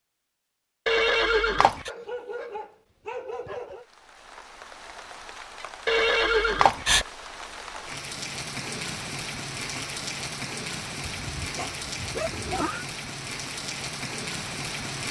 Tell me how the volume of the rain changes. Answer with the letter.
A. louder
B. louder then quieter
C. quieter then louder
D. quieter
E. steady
A.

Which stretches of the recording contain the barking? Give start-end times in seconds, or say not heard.
1.9-3.9, 11.6-12.3.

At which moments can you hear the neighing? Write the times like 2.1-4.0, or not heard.
0.8-1.9, 5.8-7.0, 11.1-12.8.